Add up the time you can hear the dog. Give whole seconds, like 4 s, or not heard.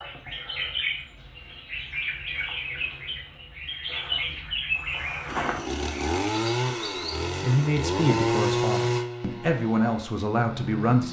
not heard.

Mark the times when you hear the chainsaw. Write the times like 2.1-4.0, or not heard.
5.2-11.0.